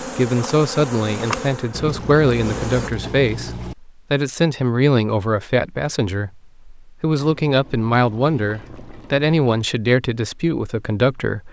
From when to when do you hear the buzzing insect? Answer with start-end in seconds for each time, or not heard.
0.0-2.9.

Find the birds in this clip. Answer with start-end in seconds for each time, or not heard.
not heard.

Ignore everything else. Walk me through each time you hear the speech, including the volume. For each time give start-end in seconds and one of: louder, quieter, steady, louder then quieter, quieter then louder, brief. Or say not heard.
0.0-11.4 steady.